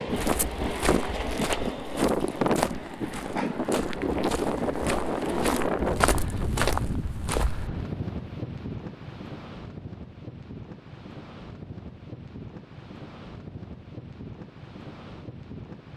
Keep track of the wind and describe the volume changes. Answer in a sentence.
The loudness of the wind goes down.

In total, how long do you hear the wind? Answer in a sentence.
You can hear the wind for 16 seconds altogether.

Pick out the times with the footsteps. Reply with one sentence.
You can hear the footsteps from 0.1 to 7.7 s.